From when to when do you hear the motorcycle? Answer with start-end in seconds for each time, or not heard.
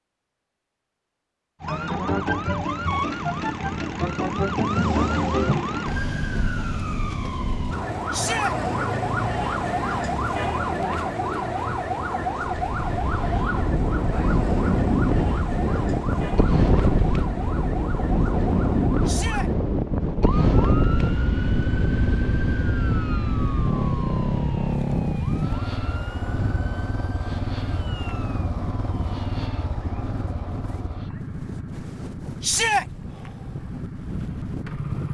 20.4-35.1.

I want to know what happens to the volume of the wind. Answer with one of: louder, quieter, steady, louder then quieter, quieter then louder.
quieter.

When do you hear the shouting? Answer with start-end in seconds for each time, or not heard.
8.1-8.6, 19.1-19.5, 32.4-32.9.